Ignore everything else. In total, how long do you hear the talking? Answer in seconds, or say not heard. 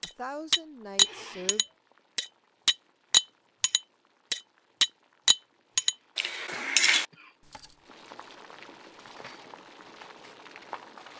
2 s.